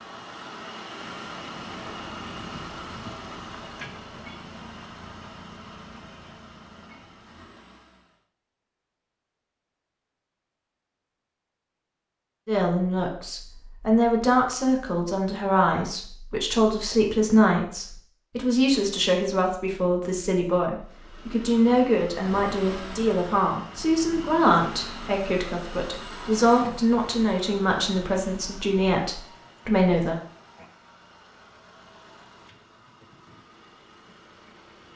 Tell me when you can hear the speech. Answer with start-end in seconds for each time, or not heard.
12.4-30.2.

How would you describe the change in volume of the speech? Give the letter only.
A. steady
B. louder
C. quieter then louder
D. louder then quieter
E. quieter
A.